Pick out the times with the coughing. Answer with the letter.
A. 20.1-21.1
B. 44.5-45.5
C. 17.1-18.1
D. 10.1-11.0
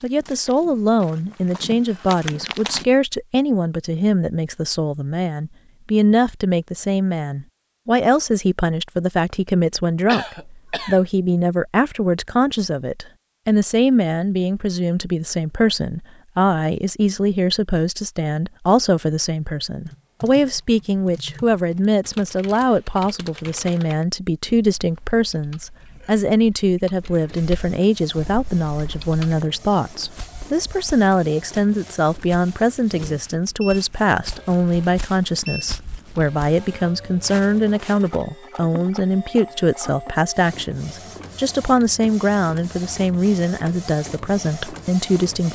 D.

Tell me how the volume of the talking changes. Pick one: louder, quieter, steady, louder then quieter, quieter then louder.
steady.